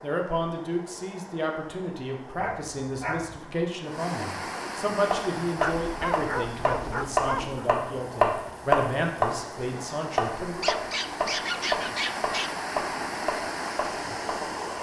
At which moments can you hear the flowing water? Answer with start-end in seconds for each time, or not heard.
0.0-14.7.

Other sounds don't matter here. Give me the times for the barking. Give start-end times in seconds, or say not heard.
2.4-3.4, 5.5-7.7, 10.6-12.5.